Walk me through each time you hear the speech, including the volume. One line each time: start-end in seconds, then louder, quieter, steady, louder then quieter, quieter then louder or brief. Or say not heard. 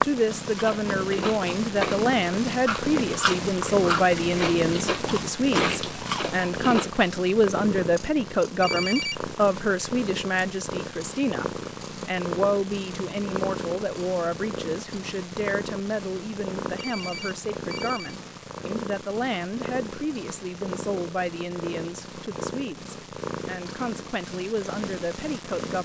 0.0-25.8 quieter.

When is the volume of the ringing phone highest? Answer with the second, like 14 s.
9 s.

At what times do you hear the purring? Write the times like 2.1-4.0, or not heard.
0.0-25.8.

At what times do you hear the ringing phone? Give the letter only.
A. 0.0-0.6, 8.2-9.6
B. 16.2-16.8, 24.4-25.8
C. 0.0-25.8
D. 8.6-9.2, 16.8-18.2
D.